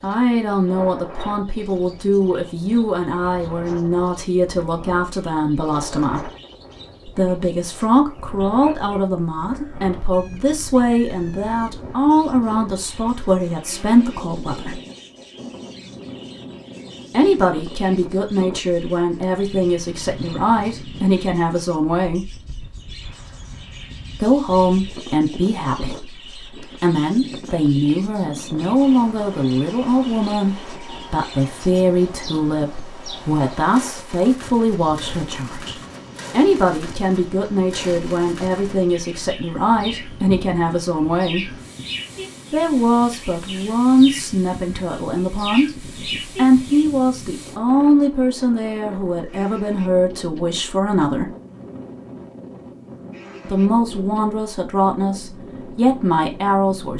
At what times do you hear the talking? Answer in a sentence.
The talking can be heard from 0.0 to 6.3 s, from 7.0 to 14.8 s, from 17.1 to 22.4 s, from 24.1 to 41.6 s, from 42.5 to 51.3 s and from 53.5 to 56.9 s.